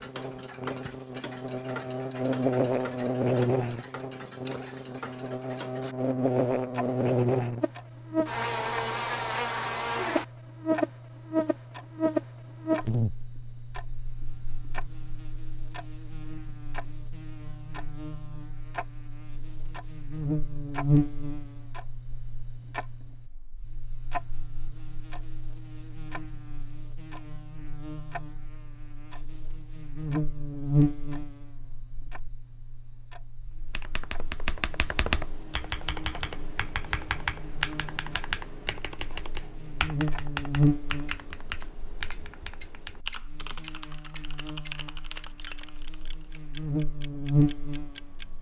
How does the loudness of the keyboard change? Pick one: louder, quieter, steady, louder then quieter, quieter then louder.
quieter.